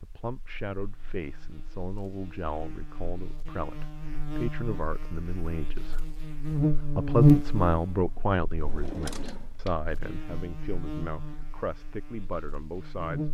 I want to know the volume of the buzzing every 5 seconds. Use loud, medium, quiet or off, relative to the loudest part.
quiet, loud, quiet.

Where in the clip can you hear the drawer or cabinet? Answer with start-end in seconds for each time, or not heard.
8.6-9.8.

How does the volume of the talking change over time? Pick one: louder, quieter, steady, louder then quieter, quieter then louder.
louder then quieter.